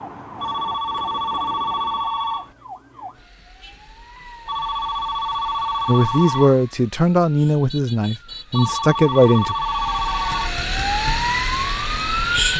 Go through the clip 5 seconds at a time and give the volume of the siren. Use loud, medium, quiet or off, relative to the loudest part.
quiet, quiet, loud.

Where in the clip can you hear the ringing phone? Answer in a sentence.
The ringing phone can be heard from 0.4 to 2.5 s, from 4.5 to 6.6 s and from 8.5 to 10.5 s.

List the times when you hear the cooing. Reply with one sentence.
The cooing can't be heard in this clip.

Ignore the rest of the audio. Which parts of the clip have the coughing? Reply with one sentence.
The coughing can't be heard in this clip.